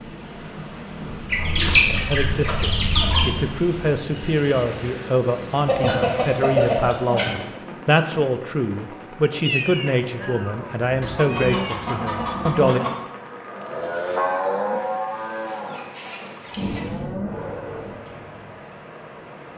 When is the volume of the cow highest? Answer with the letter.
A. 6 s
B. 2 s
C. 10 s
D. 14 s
D.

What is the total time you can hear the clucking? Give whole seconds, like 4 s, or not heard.
7 s.